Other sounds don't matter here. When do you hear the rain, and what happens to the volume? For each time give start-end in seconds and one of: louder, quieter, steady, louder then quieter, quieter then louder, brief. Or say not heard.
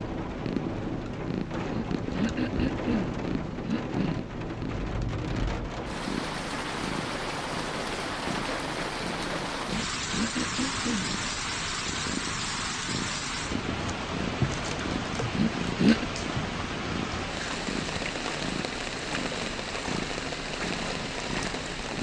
0.0-21.9 steady.